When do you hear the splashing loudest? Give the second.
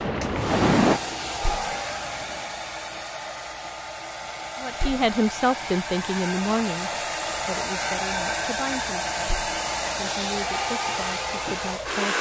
1 s.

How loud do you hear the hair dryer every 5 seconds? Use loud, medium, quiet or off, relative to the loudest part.
medium, loud, loud.